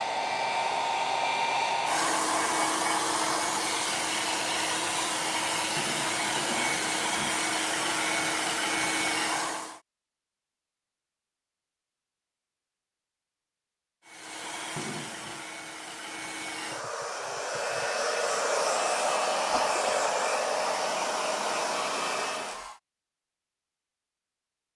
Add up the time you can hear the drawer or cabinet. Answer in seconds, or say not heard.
2 s.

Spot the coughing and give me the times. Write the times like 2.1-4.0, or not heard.
19.5-20.1.